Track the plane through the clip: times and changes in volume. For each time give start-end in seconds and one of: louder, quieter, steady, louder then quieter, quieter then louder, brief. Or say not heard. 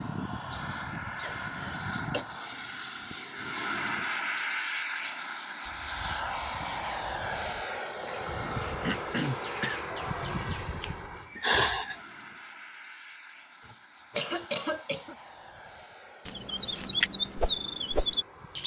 0.0-18.6 quieter.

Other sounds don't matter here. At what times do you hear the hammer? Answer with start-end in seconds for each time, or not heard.
not heard.